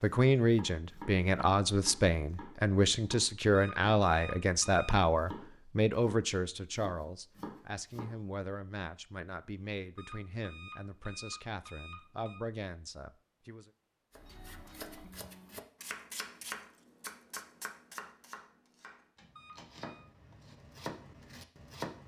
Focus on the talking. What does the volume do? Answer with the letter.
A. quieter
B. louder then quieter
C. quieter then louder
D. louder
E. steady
A.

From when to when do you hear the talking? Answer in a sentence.
The talking can be heard from 0.0 to 13.7 s.